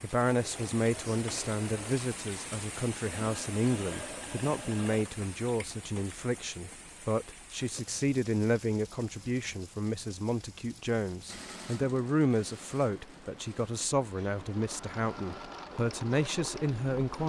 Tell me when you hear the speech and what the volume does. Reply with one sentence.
The speech can be heard from 0.0 to 17.2 s, at a steady volume.